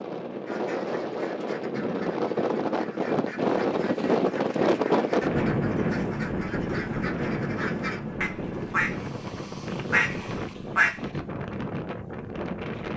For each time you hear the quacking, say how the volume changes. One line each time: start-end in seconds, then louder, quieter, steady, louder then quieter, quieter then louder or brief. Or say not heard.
0.5-11.1 louder.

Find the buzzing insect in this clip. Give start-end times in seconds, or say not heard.
not heard.